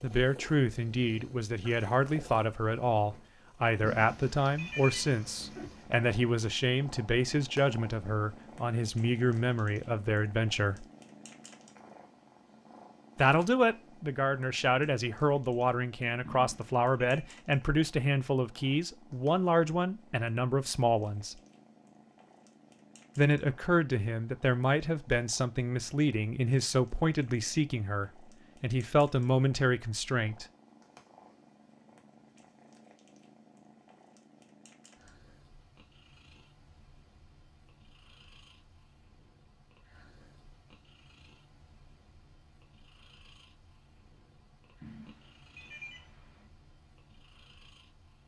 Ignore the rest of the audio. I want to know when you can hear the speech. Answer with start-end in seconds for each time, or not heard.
0.0-10.8, 13.2-21.4, 23.1-30.4.